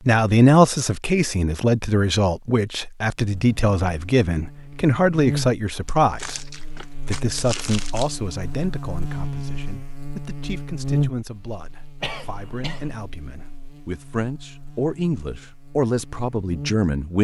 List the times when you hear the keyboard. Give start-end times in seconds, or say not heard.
not heard.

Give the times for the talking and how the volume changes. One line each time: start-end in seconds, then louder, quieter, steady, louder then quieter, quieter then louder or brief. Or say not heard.
0.1-17.1 quieter then louder.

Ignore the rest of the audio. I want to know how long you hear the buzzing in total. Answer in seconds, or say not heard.
14 s.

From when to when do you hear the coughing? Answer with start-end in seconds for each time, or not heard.
12.0-12.9.